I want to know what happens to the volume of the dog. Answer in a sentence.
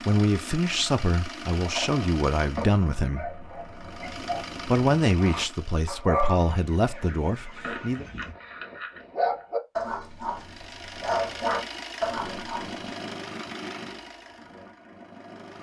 The loudness of the dog goes up.